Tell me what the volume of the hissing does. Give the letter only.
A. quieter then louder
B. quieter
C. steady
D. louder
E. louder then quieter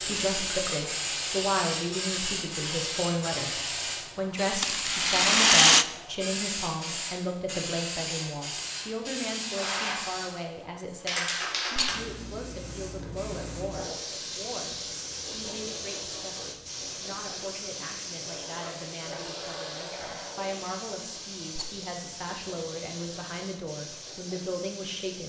B.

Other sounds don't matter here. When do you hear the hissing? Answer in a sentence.
You can hear the hissing from 0.0 to 25.2 s.